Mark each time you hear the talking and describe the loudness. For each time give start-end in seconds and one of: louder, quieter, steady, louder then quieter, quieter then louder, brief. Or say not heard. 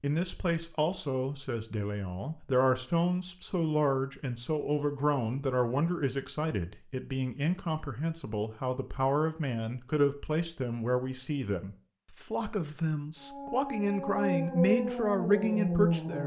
0.0-16.2 steady.